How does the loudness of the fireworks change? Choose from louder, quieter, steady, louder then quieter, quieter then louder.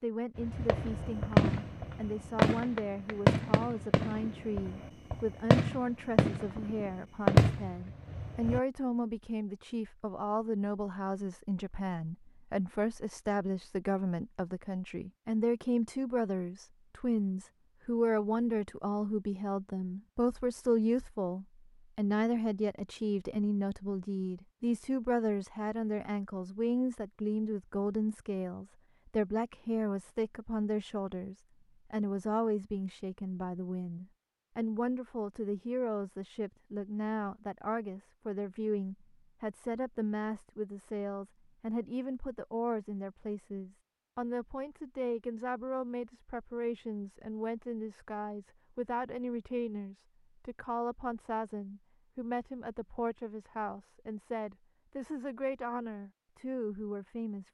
quieter then louder.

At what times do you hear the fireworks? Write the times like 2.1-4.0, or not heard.
0.3-8.6.